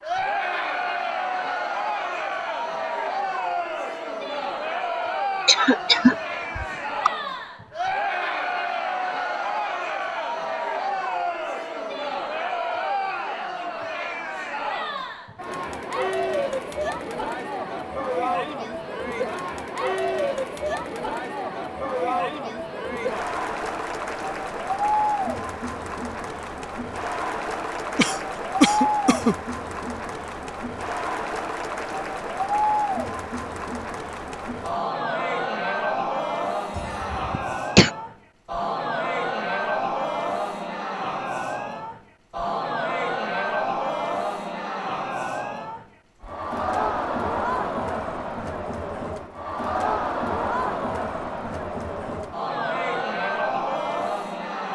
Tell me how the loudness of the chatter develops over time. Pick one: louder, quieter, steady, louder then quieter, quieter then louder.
steady.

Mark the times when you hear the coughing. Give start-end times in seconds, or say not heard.
5.5-7.1, 27.9-29.4, 36.8-37.9.